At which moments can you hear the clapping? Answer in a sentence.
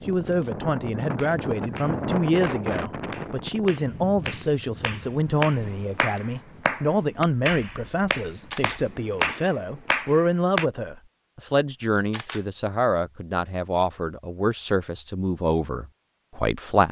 You can hear the clapping from 1.1 to 10.7 s.